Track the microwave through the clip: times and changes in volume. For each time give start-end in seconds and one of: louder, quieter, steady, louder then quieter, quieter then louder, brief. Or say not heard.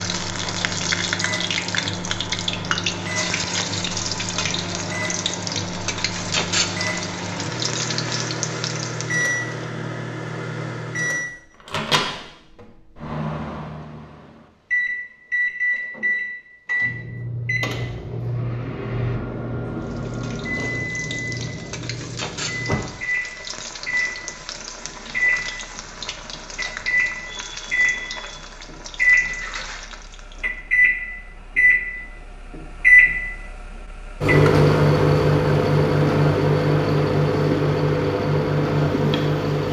0.0-39.6 louder.